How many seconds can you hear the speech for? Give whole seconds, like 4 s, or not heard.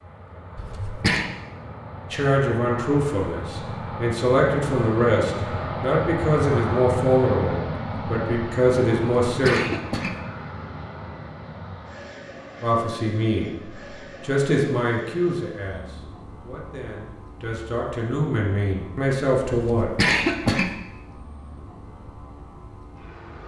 15 s.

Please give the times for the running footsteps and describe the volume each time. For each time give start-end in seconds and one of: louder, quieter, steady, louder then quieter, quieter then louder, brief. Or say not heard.
not heard.